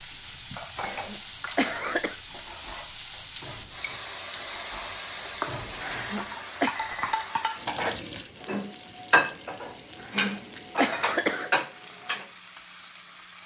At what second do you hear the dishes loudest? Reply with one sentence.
The loudest moment of the dishes is at 9 seconds.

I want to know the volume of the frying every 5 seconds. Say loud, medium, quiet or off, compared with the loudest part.
loud, loud, medium.